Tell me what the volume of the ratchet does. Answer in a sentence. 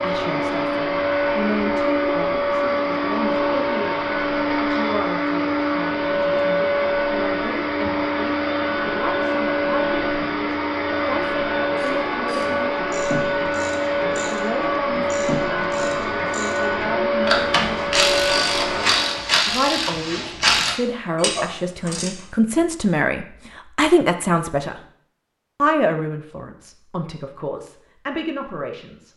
The volume of the ratchet goes up.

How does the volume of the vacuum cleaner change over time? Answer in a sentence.
The volume of the vacuum cleaner stays about the same.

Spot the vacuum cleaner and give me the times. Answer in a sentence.
The vacuum cleaner can be heard from 0.0 to 19.4 s.